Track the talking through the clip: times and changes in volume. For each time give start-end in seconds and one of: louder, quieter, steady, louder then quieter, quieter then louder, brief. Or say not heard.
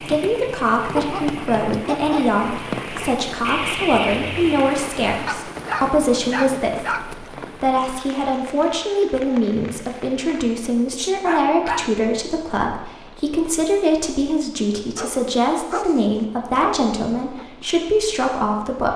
0.0-18.9 steady.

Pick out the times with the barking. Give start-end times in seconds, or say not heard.
0.9-2.4, 5.2-7.1, 10.9-11.9, 14.9-17.4.